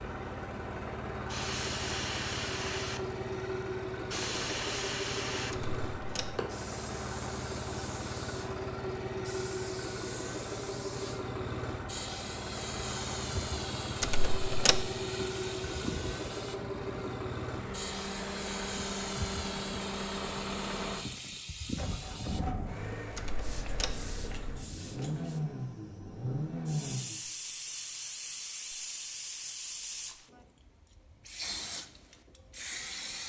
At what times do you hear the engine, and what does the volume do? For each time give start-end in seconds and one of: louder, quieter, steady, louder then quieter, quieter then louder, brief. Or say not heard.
0.0-27.2 steady.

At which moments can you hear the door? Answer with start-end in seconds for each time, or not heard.
5.5-6.4, 14.0-14.9, 23.1-24.1.